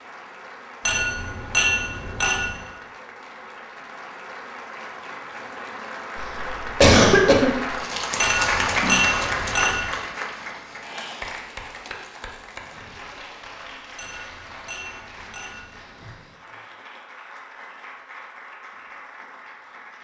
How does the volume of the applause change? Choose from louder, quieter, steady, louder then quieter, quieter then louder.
louder then quieter.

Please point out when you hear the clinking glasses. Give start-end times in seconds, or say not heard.
0.8-2.6, 8.2-9.9, 13.9-16.2.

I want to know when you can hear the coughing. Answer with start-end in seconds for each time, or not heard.
6.2-7.8.